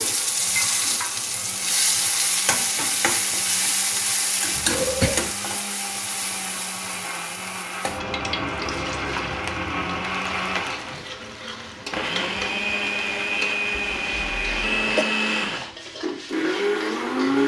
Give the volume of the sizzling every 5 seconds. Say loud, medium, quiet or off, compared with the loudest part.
loud, medium, medium, quiet.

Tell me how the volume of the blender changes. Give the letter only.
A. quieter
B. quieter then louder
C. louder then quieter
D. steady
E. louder
E.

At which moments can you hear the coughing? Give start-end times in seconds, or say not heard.
4.8-5.3, 13.7-15.1.